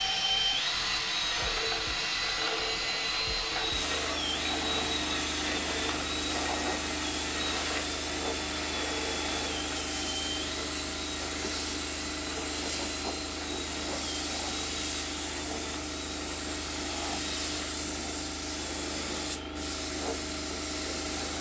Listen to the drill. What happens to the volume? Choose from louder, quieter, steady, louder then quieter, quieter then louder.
quieter.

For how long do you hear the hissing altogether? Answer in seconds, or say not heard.
21 s.